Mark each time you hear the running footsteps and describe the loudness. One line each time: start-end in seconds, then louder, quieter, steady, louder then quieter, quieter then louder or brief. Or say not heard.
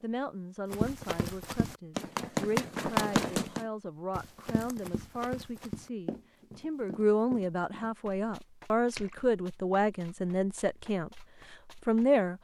0.7-12.1 quieter.